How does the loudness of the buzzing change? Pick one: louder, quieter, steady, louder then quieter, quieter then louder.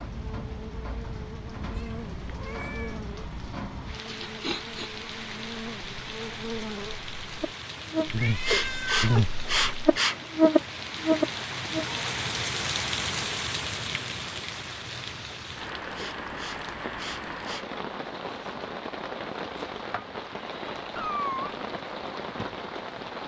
louder.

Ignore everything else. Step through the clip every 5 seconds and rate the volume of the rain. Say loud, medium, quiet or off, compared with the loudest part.
medium, medium, loud, loud, loud.